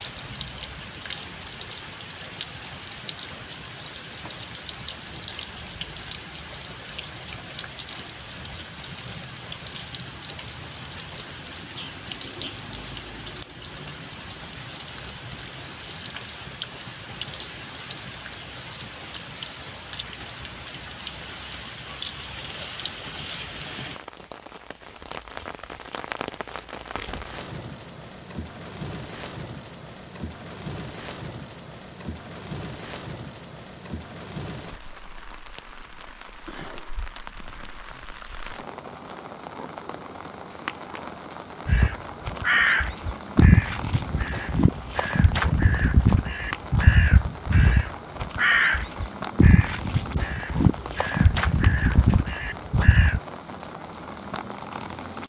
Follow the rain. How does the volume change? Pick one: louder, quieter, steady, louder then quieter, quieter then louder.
steady.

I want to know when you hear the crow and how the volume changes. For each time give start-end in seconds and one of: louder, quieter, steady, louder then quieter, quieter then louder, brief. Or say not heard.
41.6-53.2 steady.